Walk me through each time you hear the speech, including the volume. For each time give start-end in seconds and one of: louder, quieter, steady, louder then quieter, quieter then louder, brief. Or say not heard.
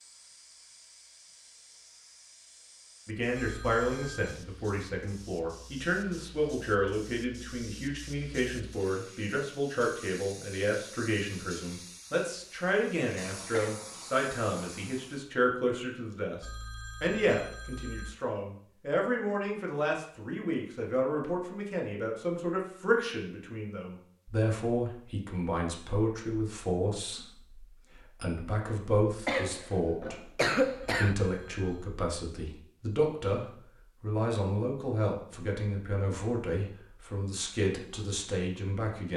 3.0-39.1 steady.